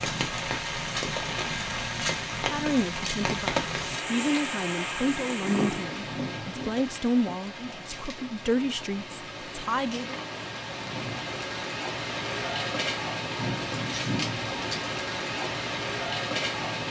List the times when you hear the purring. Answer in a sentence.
The purring can be heard from 0.0 to 6.0 s.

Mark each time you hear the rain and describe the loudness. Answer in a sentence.
You can hear the rain from 0.0 to 16.8 s, getting quieter then louder.